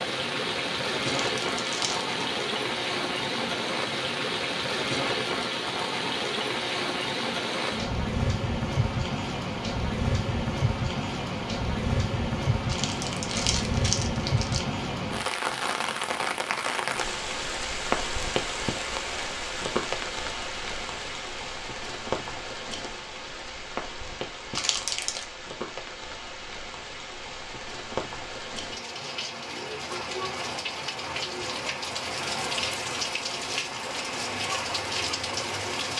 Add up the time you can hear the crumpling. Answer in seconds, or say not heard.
4 s.